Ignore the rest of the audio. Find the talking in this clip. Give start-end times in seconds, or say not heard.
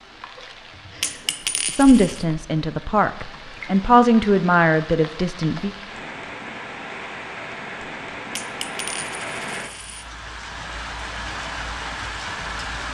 1.8-5.7.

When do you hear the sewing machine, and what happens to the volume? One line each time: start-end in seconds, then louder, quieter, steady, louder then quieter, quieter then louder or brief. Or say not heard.
not heard.